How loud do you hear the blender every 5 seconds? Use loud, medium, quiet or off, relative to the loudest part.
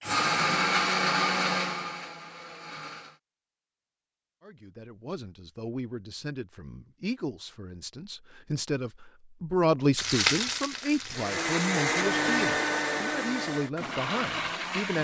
loud, off, loud.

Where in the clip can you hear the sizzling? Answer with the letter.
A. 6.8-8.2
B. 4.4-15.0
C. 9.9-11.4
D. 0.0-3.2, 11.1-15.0
C.